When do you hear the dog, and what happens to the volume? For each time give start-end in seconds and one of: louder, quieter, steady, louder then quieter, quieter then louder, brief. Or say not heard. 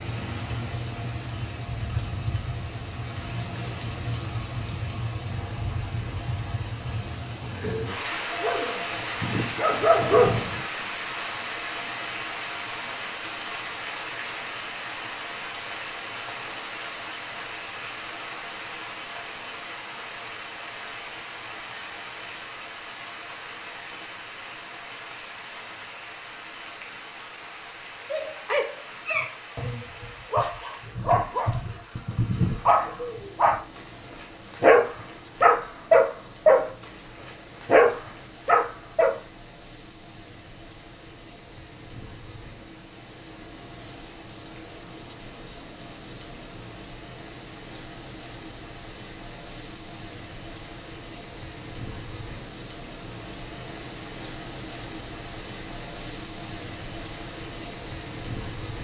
8.3-10.6 brief
28.1-36.6 louder
37.2-39.1 brief.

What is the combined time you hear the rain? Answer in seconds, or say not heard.
59 s.